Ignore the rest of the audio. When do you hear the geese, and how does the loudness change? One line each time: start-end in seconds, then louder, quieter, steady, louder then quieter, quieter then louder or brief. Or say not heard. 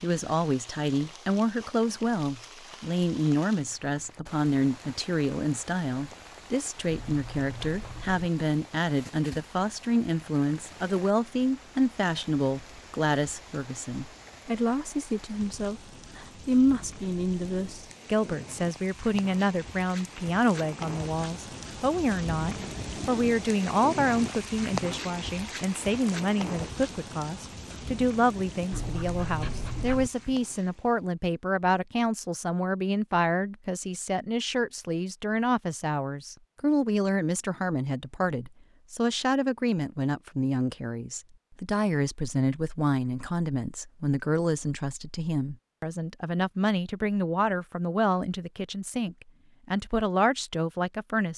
not heard.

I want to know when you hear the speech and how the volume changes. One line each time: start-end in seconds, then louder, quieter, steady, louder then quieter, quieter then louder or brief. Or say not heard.
0.0-51.3 steady.